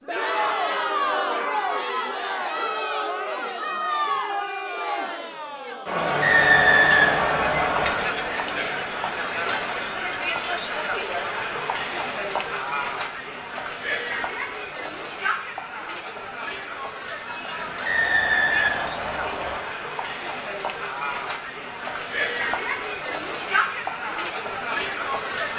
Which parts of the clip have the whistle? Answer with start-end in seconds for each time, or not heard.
6.2-8.0, 17.9-19.6.